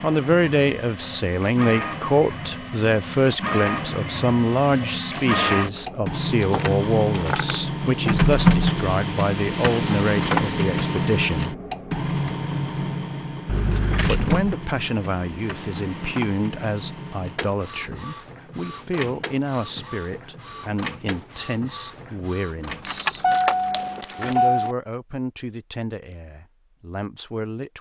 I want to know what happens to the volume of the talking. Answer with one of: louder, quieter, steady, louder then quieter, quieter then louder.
quieter.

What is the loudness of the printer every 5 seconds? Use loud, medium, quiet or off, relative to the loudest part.
medium, loud, loud, quiet, quiet, off.